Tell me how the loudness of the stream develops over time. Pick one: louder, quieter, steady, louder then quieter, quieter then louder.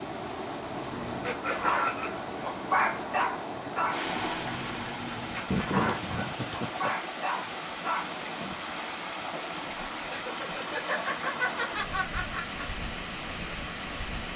steady.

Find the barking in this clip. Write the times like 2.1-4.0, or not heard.
0.7-8.7.